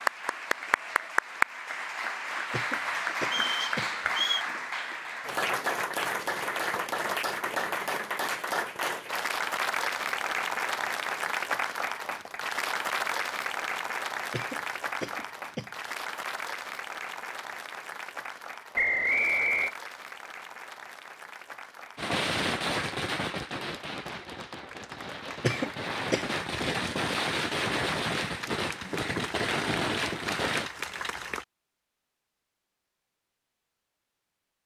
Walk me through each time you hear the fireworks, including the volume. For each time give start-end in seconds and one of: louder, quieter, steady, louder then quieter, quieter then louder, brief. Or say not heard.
21.9-30.7 quieter then louder.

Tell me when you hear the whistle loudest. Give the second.
19 s.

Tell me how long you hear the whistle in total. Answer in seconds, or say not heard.
2 s.